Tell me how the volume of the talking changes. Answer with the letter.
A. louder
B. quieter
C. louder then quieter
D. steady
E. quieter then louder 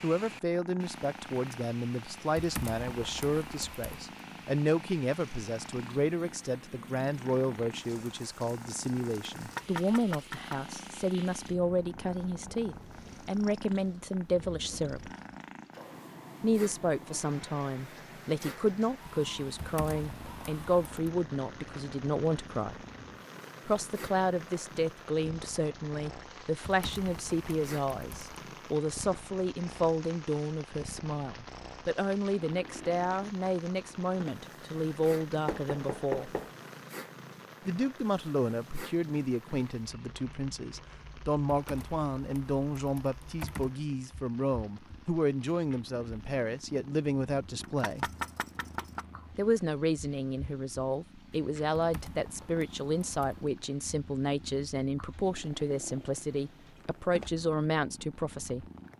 D.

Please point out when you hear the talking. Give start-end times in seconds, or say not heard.
0.0-15.1, 16.4-22.8, 23.6-36.3, 37.6-48.0, 49.4-58.6.